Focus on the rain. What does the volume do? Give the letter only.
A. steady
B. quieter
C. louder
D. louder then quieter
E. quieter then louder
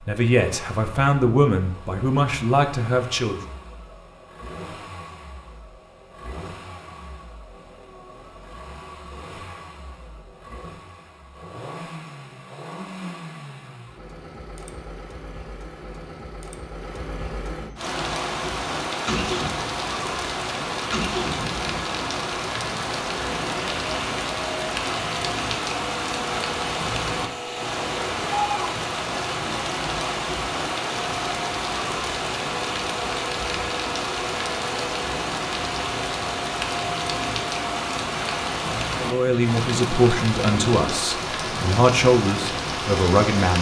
A.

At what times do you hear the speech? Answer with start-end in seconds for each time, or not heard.
0.1-3.4, 39.0-43.5.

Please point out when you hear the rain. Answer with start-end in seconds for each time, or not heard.
17.8-43.5.